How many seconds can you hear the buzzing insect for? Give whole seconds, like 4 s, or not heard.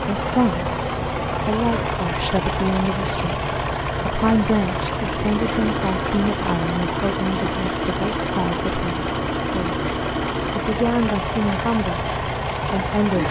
not heard.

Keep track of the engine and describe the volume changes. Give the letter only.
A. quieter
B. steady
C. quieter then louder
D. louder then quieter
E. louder
B.